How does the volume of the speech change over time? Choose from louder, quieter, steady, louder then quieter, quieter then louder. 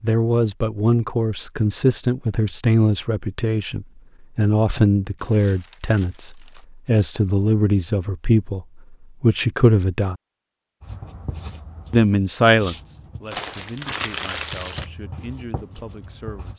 quieter.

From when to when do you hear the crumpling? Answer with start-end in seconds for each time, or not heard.
5.2-6.7, 13.3-14.9.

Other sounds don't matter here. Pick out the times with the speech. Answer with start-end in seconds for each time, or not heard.
0.0-10.2, 11.9-16.5.